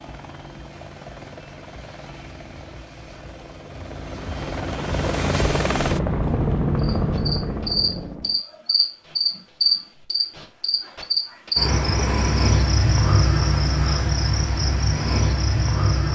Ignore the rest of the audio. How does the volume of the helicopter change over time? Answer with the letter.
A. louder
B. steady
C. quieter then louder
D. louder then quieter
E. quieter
A.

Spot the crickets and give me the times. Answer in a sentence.
The crickets can be heard from 6.8 to 16.1 s.